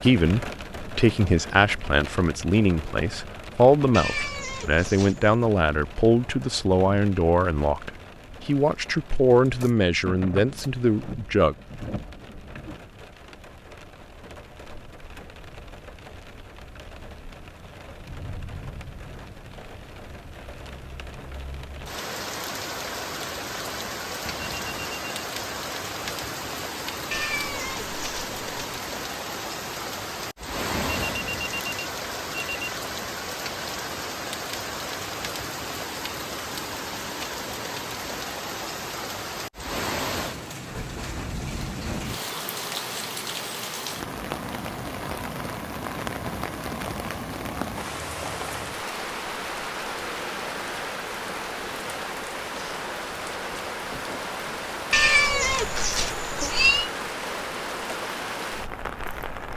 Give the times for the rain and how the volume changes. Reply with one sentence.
You can hear the rain from 0.0 to 59.5 s, getting louder.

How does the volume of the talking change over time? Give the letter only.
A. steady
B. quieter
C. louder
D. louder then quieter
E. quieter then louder
A.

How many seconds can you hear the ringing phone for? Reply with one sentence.
You can hear the ringing phone for 3 seconds altogether.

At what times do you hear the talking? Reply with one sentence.
The talking can be heard from 0.0 to 11.6 s.